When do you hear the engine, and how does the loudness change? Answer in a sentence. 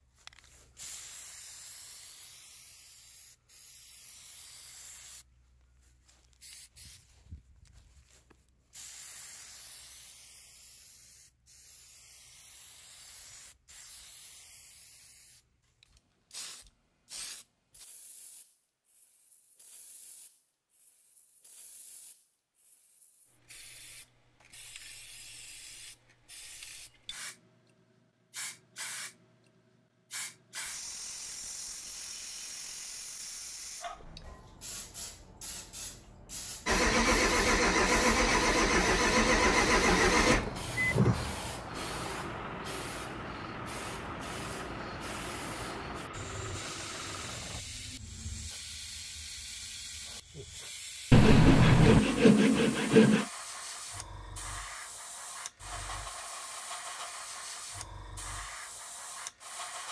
You can hear the engine from 36.6 to 47.6 s, getting quieter.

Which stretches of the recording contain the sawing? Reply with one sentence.
The sawing can be heard from 51.1 to 53.2 s.